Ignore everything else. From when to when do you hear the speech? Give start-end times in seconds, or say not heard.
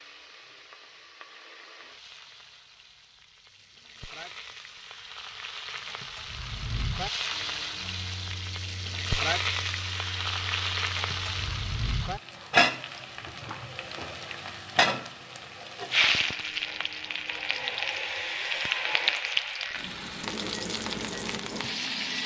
not heard.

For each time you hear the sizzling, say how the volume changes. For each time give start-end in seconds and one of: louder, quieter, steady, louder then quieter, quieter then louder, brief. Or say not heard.
0.0-22.2 louder.